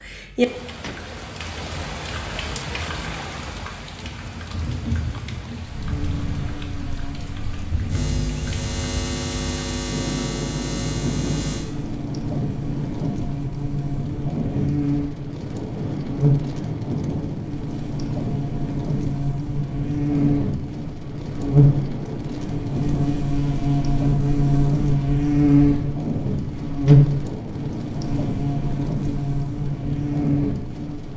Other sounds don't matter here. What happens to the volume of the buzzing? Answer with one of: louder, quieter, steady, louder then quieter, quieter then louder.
louder.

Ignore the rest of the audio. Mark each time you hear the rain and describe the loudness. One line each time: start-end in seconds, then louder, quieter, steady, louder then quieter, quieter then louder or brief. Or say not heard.
0.0-31.1 steady.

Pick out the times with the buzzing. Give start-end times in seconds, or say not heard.
5.8-31.1.